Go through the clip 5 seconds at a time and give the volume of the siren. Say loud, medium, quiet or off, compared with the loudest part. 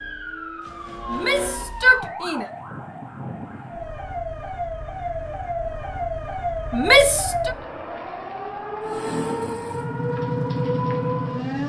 medium, loud, loud.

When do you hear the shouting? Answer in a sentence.
The shouting can be heard from 1.1 to 2.5 s and from 6.7 to 7.5 s.